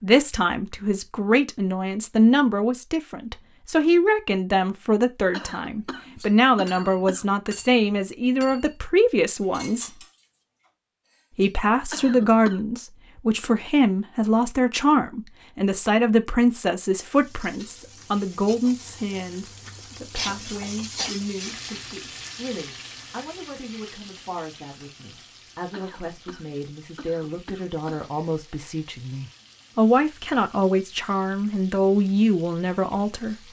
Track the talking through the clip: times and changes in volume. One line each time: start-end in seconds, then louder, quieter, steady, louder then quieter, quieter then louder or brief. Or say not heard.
0.0-10.0 steady
11.3-33.4 quieter then louder.